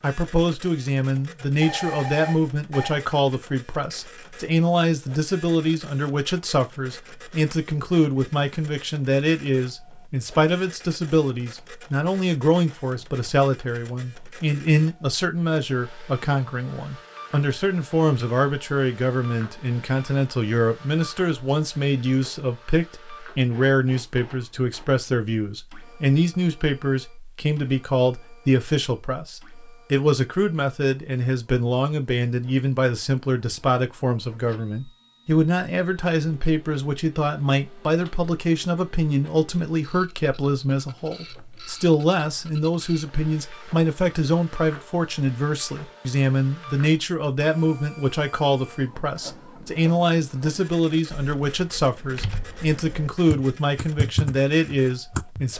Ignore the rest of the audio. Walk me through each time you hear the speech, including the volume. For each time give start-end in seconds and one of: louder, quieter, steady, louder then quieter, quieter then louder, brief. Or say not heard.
0.0-55.5 steady.